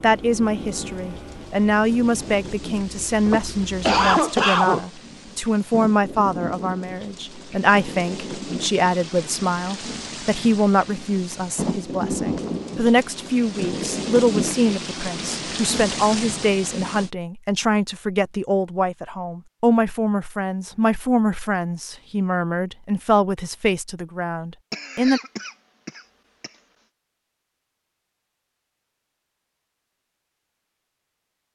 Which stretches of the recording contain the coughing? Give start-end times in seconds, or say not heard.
3.2-4.8, 24.7-26.5.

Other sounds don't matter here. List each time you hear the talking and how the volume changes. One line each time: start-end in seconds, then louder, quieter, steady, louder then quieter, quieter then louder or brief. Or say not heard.
0.0-25.2 steady.